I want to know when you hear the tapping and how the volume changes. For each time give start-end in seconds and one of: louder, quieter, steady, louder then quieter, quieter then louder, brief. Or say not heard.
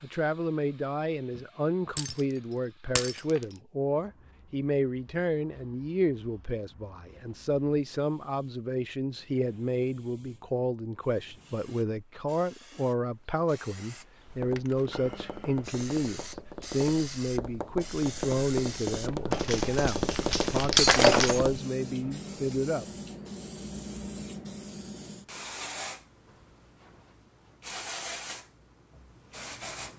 14.2-21.6 louder.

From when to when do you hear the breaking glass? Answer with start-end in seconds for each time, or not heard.
1.9-3.4, 20.8-21.4.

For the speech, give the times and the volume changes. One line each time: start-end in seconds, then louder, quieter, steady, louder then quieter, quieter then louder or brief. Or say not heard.
0.0-22.9 steady.